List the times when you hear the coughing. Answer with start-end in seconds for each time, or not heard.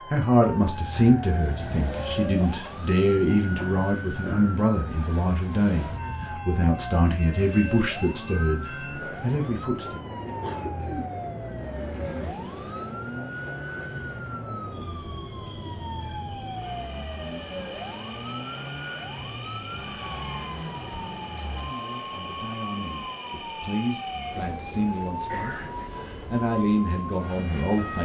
3.5-4.5, 10.4-12.3, 25.2-25.9.